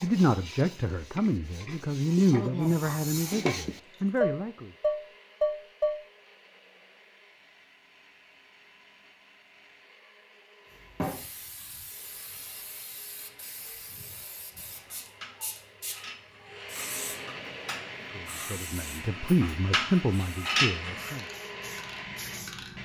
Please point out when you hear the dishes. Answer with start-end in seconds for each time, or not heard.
0.0-6.0, 15.0-21.1.